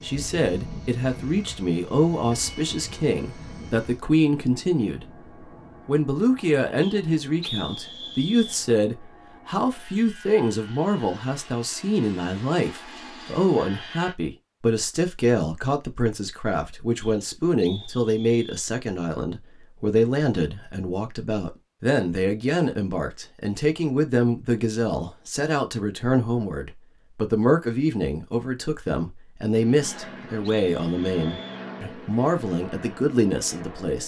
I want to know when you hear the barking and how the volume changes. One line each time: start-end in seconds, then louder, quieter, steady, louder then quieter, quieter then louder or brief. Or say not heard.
not heard.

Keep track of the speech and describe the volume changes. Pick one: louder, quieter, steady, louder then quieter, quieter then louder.
steady.